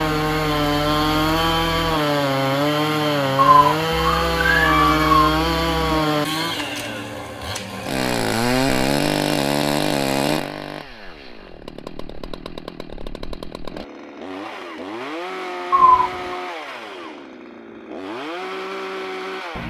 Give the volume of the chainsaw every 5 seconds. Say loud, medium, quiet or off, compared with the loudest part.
loud, loud, medium, medium.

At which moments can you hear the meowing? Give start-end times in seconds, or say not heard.
3.5-5.3, 15.7-16.4.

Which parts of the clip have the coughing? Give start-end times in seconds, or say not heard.
not heard.